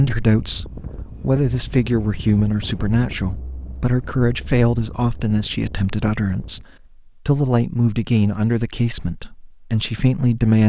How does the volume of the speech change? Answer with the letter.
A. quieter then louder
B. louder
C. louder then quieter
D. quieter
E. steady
E.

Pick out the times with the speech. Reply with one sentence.
You can hear the speech from 0.0 to 6.7 s and from 7.2 to 10.6 s.